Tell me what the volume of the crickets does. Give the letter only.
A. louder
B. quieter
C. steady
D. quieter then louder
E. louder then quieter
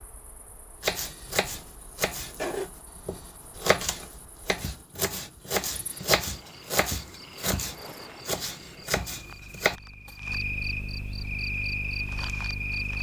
A.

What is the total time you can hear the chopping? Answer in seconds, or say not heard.
9 s.